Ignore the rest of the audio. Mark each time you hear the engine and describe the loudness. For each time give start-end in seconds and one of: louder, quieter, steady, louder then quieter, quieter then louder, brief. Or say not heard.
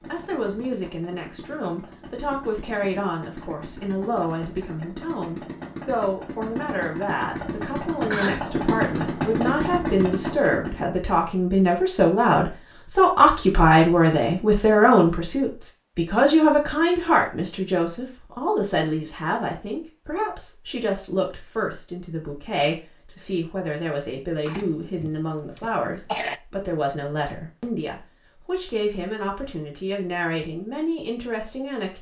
0.0-10.8 louder.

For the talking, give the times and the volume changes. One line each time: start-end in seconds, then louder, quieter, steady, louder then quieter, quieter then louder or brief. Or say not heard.
0.1-31.9 louder then quieter.